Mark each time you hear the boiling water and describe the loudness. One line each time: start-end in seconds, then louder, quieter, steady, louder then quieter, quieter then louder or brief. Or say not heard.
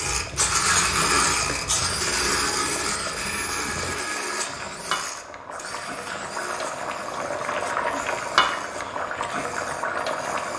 0.0-10.5 louder.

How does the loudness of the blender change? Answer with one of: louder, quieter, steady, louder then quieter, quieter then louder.
quieter.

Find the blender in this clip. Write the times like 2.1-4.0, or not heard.
0.0-10.5.